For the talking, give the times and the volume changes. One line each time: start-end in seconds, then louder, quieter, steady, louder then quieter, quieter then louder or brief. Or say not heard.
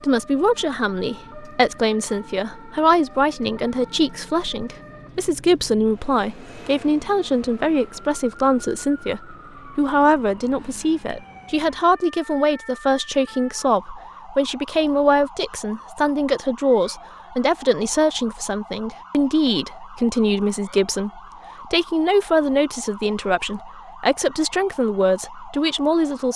0.0-26.3 steady.